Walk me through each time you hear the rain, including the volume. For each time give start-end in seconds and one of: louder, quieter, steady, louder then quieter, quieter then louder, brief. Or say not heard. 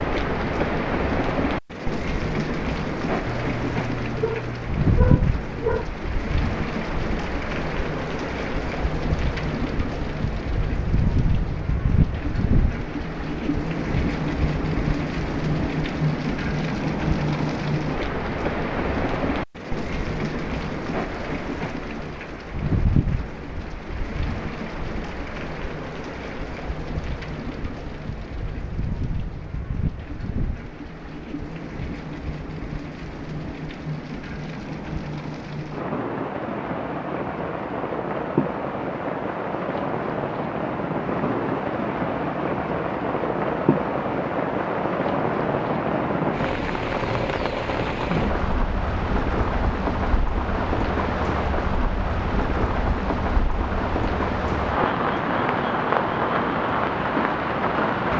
0.0-58.1 quieter then louder.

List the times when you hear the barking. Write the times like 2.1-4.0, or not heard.
3.2-5.8.